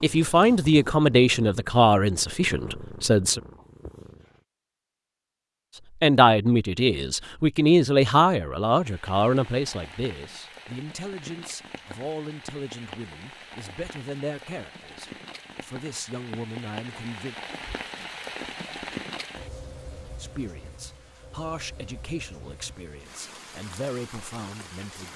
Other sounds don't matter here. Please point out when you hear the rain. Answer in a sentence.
The rain can be heard from 8.7 to 25.1 s.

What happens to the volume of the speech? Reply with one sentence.
The volume of the speech goes down.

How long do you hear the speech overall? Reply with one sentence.
You can hear the speech for 20 seconds altogether.